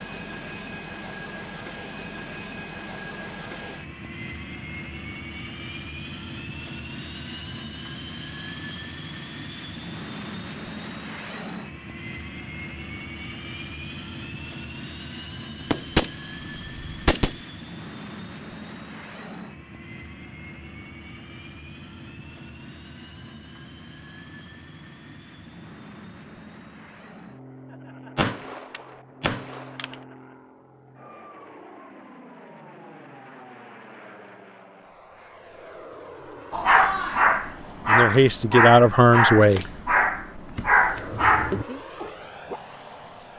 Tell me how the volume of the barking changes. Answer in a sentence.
The loudness of the barking stays about the same.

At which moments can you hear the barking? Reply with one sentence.
You can hear the barking from 36.5 to 42.6 s.